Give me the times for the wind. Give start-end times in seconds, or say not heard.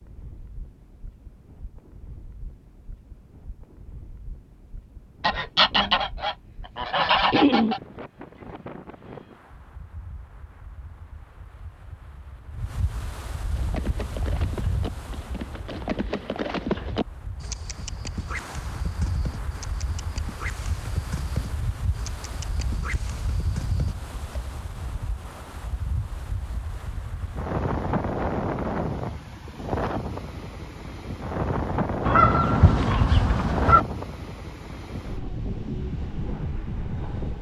0.0-37.3.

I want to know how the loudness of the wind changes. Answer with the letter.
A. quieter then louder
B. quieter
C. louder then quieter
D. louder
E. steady
D.